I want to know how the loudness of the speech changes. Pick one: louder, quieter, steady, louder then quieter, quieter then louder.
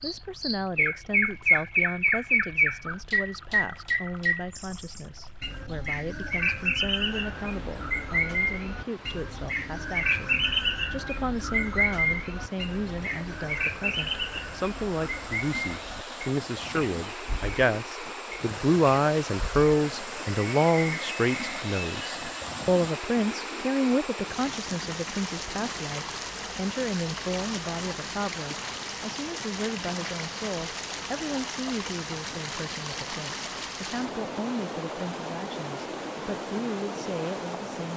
louder then quieter.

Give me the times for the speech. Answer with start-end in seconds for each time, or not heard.
0.0-37.9.